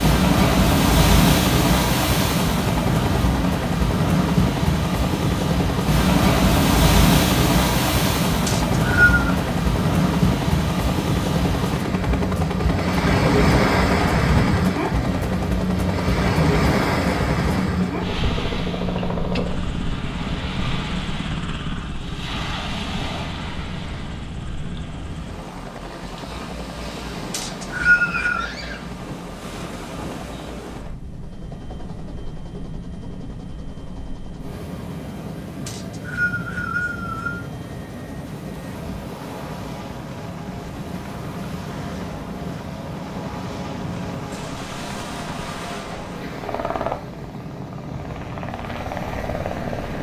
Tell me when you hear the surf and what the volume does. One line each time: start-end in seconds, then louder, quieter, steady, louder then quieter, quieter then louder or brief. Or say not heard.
0.0-49.9 quieter.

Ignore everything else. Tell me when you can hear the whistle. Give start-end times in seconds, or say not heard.
8.4-9.2, 27.3-28.5, 35.6-37.4.